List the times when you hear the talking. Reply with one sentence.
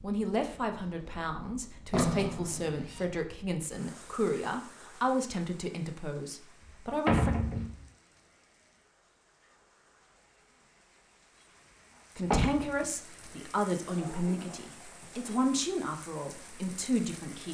You can hear the talking from 0.0 to 7.3 s and from 12.2 to 17.4 s.